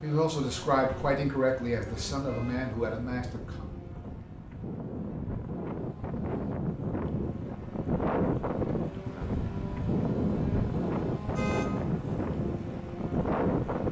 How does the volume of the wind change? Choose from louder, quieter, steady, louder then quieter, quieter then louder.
louder.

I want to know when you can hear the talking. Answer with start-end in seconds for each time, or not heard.
0.0-3.6.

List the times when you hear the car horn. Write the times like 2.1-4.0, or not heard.
2.2-2.7, 11.3-11.9.